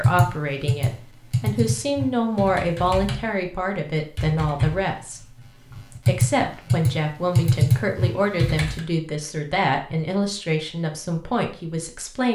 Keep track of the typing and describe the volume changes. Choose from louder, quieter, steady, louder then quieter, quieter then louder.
quieter then louder.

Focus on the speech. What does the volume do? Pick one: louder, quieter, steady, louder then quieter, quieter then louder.
steady.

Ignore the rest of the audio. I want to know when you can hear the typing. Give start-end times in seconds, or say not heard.
0.0-3.3, 4.2-8.8.